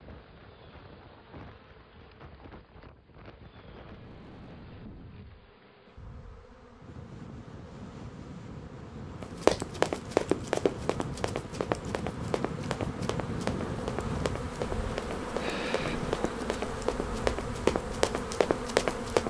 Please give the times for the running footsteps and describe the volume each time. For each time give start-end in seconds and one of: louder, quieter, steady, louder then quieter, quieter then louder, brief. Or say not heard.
9.2-19.2 quieter then louder.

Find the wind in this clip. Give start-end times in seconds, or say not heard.
0.0-19.2.